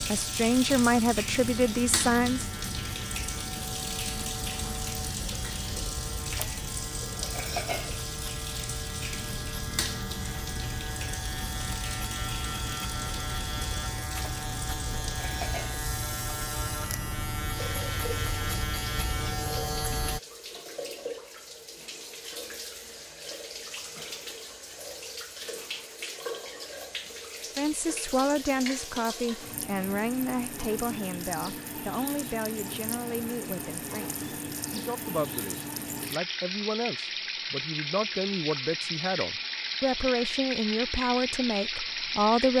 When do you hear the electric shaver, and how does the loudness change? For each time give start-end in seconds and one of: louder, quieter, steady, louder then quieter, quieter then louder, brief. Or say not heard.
0.0-20.2 louder.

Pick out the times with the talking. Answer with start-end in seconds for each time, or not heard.
0.0-2.5, 27.6-42.5.